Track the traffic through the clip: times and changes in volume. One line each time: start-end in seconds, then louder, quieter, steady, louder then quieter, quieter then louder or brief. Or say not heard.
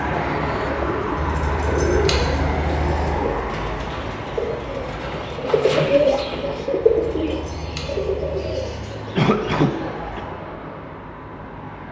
0.0-11.8 quieter.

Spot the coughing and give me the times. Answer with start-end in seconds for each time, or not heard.
0.1-0.8, 9.2-10.2.